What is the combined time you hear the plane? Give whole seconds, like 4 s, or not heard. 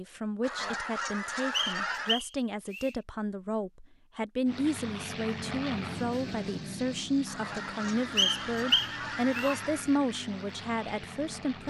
7 s.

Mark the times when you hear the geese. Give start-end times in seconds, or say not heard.
0.4-2.2, 7.2-9.9.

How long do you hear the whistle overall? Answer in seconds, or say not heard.
3 s.